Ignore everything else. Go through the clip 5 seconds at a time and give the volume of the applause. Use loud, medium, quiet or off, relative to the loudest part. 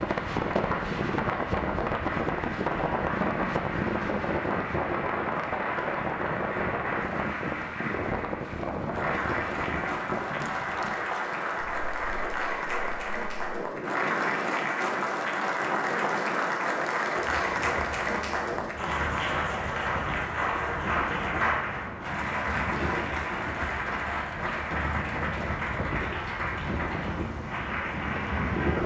medium, medium, loud, loud, loud, medium.